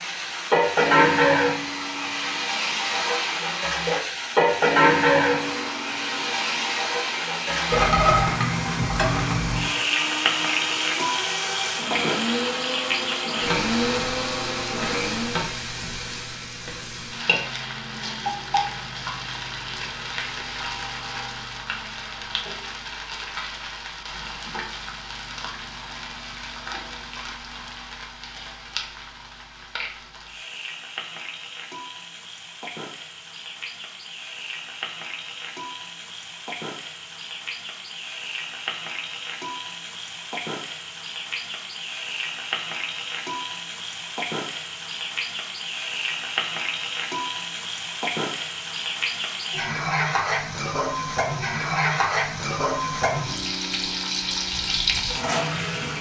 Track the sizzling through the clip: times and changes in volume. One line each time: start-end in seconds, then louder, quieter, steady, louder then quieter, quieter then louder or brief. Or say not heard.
0.0-55.9 quieter then louder.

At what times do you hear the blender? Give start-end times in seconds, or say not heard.
0.0-15.4.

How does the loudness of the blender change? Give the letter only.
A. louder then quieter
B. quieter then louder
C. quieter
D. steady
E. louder
E.